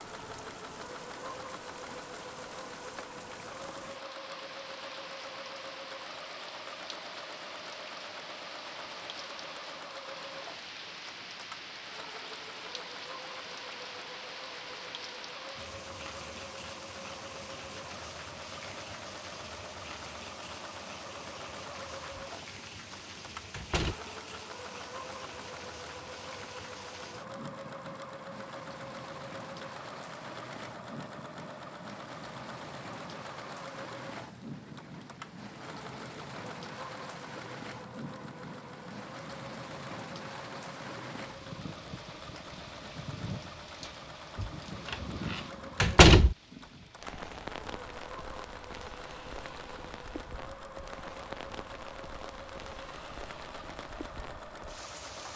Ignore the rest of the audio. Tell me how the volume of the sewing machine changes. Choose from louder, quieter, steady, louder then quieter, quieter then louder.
steady.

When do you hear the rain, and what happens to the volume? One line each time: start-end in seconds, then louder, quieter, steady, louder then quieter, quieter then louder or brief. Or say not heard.
0.0-55.3 steady.